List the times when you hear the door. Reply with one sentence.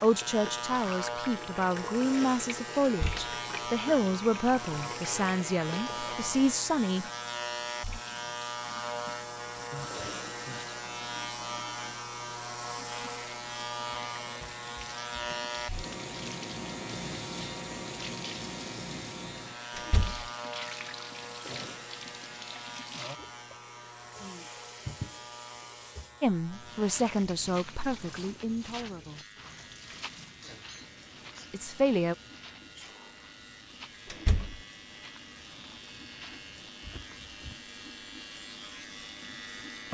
You can hear the door from 2.8 to 3.3 s, from 19.8 to 20.3 s and from 34.1 to 34.6 s.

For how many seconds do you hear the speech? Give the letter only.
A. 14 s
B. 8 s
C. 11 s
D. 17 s
C.